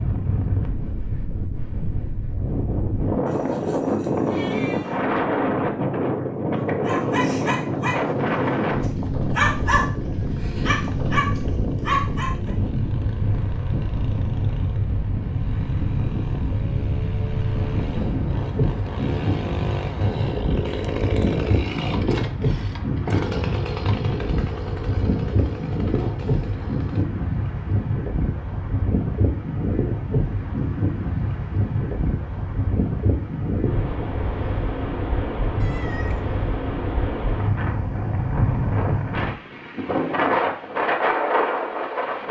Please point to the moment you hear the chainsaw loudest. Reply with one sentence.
The loudest moment of the chainsaw is at 21 seconds.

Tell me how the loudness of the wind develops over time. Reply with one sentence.
The volume of the wind stays about the same.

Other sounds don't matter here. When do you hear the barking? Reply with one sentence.
You can hear the barking from 6.5 to 12.5 s.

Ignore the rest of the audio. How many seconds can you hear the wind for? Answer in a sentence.
The wind can be heard for 42 seconds in total.